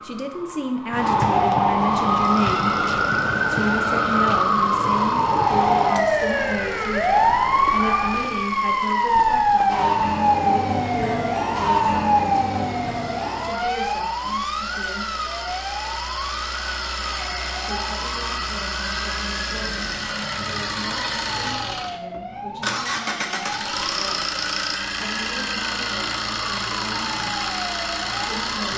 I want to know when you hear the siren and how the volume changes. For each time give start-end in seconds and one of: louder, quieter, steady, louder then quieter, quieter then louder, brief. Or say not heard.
0.0-28.7 quieter.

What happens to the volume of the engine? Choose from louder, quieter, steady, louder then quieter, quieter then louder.
louder.